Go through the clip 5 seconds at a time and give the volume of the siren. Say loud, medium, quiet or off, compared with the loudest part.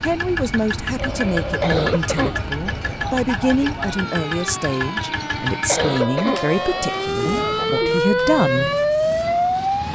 quiet, loud.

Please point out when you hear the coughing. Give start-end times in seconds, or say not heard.
1.6-3.1, 5.7-7.2.